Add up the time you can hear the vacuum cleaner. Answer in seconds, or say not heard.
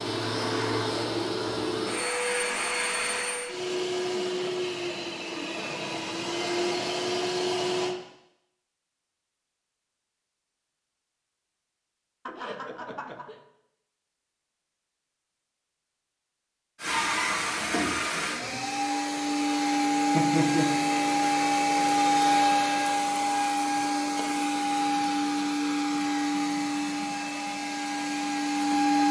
20 s.